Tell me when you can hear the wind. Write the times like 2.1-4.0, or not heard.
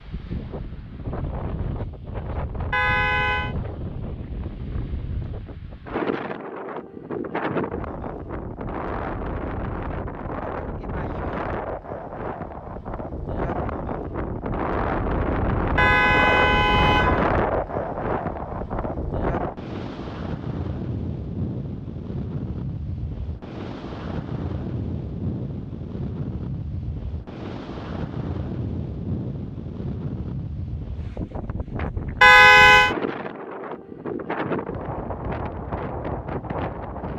0.0-37.1.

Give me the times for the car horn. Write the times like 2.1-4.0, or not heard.
2.7-3.5, 15.8-17.2, 32.2-33.0.